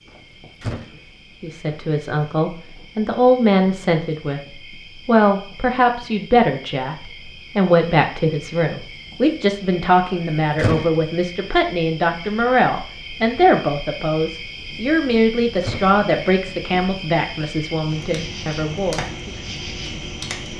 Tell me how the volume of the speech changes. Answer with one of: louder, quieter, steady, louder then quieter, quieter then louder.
steady.